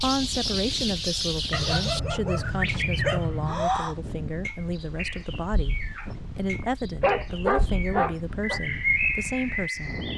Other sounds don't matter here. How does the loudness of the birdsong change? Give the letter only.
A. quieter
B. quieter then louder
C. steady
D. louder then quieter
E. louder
B.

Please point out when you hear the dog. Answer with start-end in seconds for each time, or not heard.
1.5-3.5, 7.0-8.6.